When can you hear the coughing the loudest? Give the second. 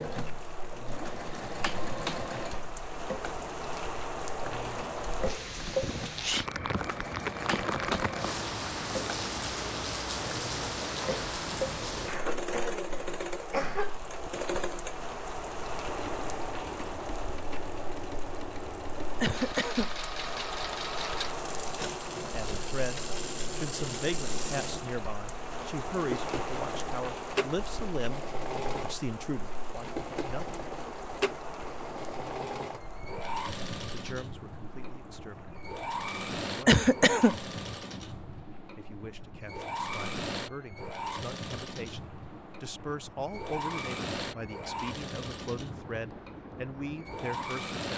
37 s.